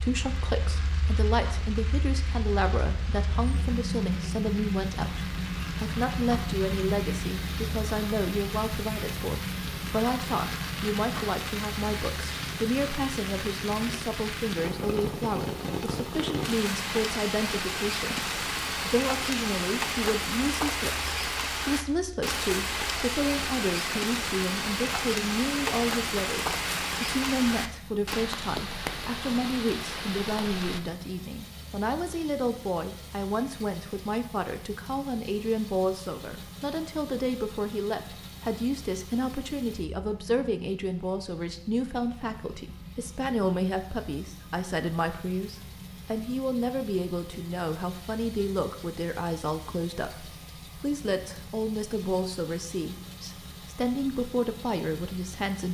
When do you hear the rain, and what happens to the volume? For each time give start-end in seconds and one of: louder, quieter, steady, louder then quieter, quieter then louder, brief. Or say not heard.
0.0-30.8 louder.